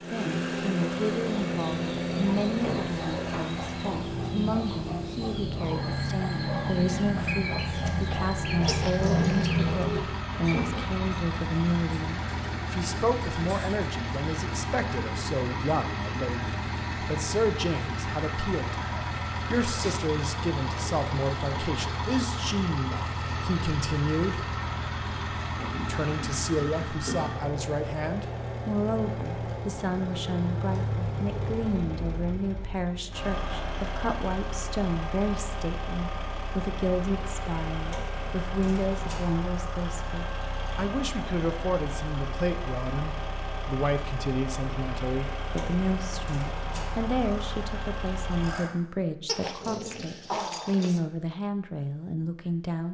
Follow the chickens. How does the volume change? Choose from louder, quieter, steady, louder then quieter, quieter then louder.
louder.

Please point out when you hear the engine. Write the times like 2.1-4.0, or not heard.
0.0-48.7.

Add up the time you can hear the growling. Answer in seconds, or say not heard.
3 s.